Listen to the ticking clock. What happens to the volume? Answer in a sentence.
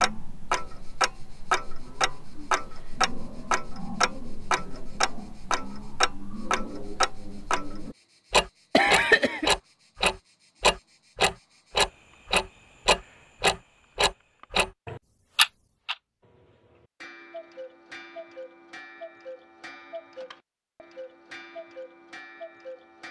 The volume of the ticking clock goes up, then down.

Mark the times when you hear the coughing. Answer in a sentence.
You can hear the coughing from 8.7 to 9.5 s.